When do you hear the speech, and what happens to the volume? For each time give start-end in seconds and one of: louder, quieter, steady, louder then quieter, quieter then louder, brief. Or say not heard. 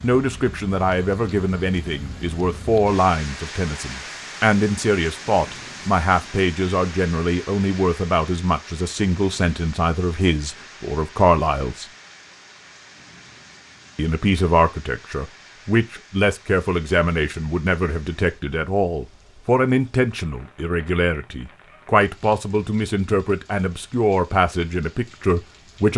0.0-11.8 steady
13.9-25.9 steady.